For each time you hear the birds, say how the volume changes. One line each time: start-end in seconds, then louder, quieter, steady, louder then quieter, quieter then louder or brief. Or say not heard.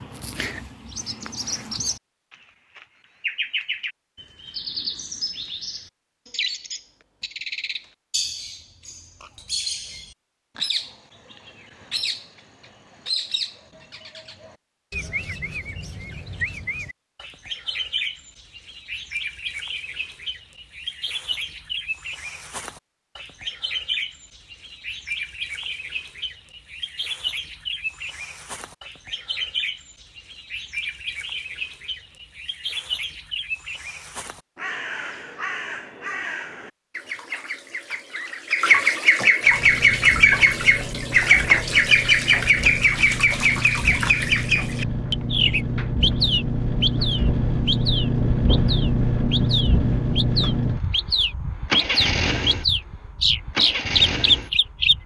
0.0-55.0 louder.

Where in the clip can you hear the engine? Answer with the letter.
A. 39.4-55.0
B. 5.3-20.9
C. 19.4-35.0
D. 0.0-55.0
A.